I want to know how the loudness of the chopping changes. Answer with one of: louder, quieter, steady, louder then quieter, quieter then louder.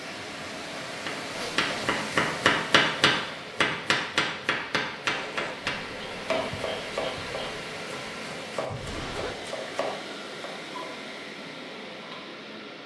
quieter.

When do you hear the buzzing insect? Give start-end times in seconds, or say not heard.
5.6-7.7.